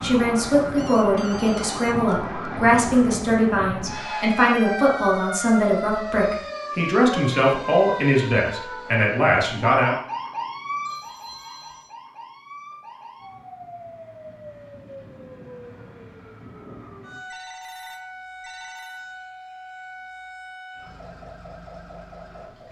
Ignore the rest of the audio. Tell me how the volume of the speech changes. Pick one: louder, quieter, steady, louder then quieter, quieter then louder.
steady.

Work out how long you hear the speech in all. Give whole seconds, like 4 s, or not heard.
10 s.